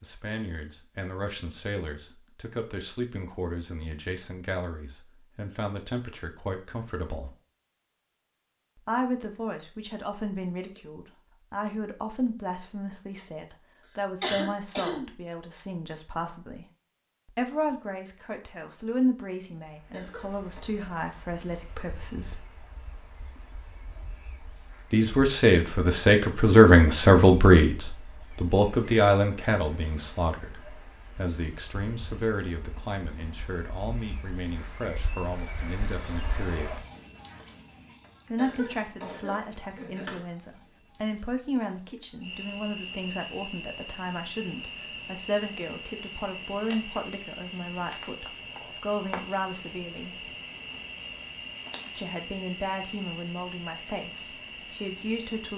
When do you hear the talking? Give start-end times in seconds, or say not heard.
0.0-7.3, 8.8-16.6, 17.2-22.4, 24.9-36.9, 38.3-50.3, 52.0-55.5.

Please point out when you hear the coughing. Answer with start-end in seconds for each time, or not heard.
14.2-15.1, 19.9-20.6, 38.4-40.2.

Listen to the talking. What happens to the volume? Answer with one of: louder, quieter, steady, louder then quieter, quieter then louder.
louder then quieter.